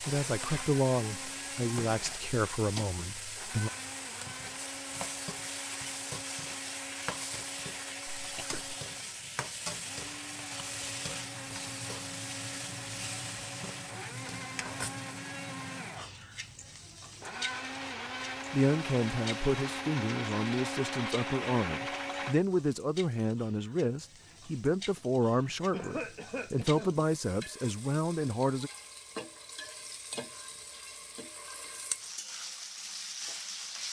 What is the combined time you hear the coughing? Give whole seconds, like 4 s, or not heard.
2 s.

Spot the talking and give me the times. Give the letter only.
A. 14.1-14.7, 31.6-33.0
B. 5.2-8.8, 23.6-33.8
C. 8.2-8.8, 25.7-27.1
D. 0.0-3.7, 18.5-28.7
D.